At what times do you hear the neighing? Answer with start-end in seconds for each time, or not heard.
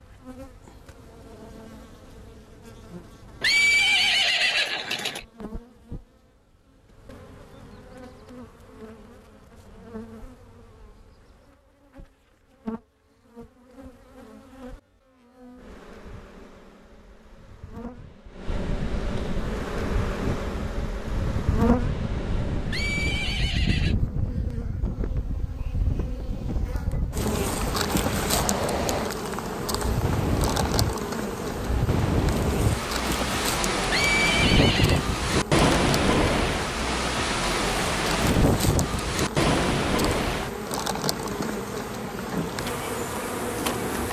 3.4-5.2, 22.7-23.9, 33.9-35.0.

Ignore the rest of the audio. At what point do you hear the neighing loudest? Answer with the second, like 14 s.
4 s.